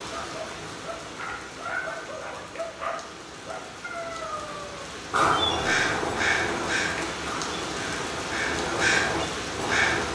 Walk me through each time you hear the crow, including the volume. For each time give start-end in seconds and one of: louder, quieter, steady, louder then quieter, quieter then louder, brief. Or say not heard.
5.1-10.1 quieter then louder.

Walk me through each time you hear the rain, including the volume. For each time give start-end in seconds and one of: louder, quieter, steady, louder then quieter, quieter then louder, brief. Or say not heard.
0.0-10.1 louder.